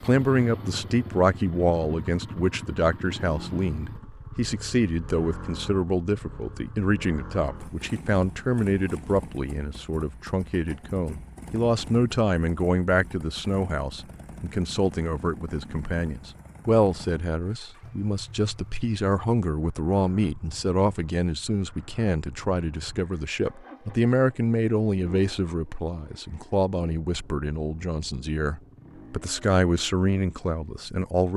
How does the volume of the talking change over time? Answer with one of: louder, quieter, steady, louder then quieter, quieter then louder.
steady.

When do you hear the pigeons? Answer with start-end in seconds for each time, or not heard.
not heard.